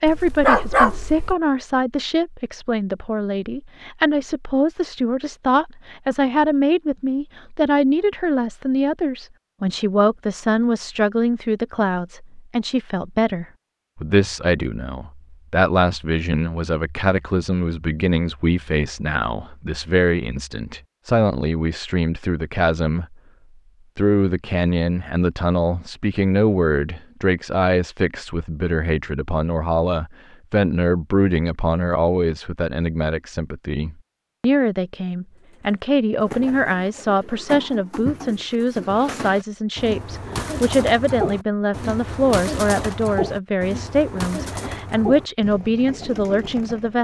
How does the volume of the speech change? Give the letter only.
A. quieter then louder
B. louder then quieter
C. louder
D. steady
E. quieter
D.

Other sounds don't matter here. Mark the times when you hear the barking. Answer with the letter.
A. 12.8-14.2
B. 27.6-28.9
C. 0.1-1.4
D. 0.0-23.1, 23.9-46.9
C.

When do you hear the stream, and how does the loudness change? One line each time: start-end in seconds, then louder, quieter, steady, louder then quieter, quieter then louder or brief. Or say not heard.
not heard.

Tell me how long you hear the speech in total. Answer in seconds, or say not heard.
46 s.